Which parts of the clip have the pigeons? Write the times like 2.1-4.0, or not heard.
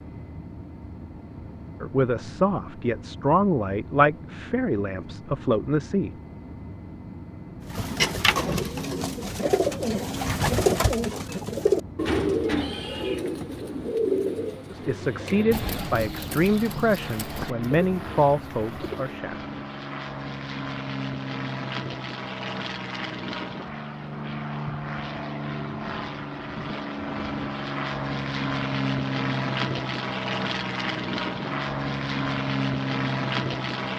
7.7-19.2.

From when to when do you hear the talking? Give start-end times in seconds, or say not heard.
1.8-6.1, 14.7-19.4.